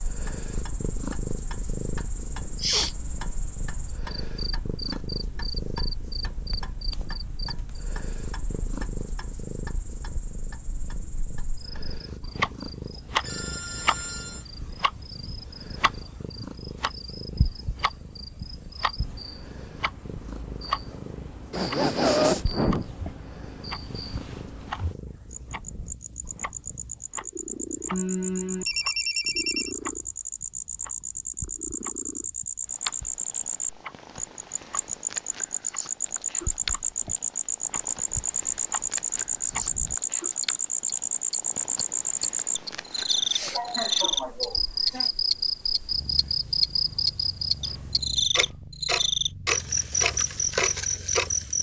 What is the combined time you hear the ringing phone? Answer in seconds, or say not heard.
3 s.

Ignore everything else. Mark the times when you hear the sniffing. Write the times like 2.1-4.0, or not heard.
2.4-2.9, 21.5-22.9, 43.2-45.1.